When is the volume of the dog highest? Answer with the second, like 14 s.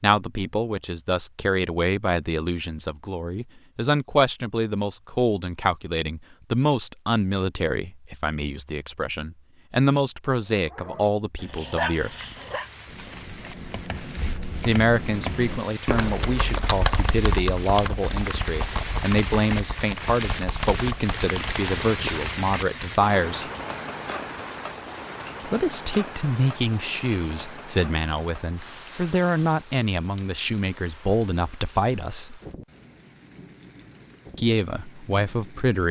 12 s.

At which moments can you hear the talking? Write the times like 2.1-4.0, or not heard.
0.0-12.1, 14.7-23.5, 25.4-32.4, 34.4-35.8.